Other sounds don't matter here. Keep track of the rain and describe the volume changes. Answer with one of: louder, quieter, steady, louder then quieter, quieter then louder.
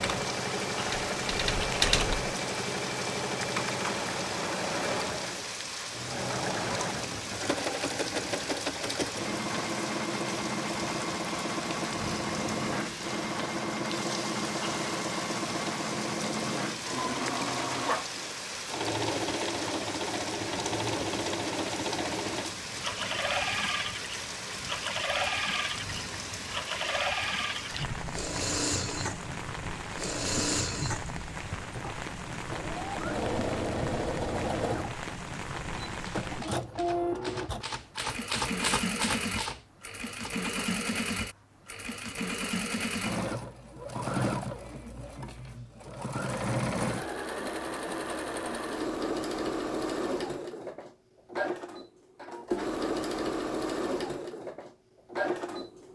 steady.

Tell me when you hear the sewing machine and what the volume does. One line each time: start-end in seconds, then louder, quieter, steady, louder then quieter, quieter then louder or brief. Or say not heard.
0.0-55.9 steady.